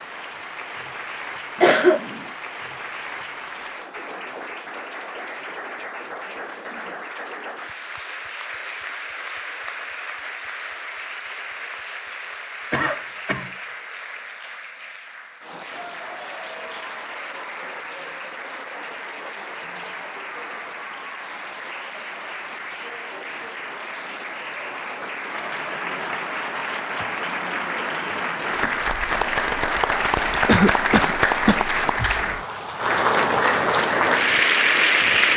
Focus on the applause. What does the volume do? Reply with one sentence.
The loudness of the applause goes up.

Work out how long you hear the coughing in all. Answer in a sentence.
The coughing can be heard for 3 seconds in total.